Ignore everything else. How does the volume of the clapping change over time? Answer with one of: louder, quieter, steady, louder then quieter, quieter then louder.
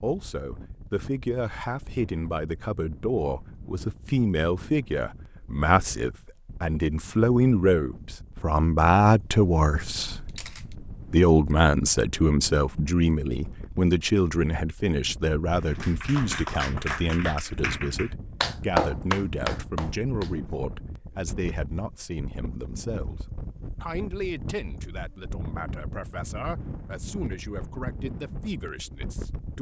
louder then quieter.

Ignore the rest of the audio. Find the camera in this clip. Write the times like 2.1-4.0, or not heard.
10.2-10.8.